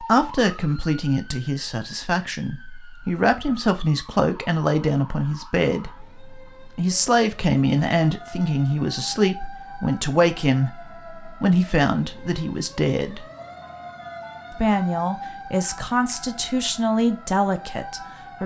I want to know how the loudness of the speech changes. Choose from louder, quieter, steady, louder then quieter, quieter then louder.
steady.